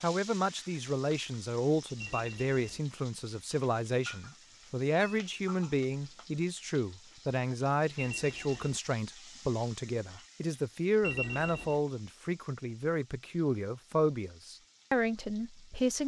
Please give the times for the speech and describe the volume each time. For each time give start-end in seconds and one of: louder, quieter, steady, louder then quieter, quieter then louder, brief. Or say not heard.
0.0-16.0 steady.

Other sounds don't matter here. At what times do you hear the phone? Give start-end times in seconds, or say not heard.
1.9-2.8, 8.0-8.8, 11.0-11.8.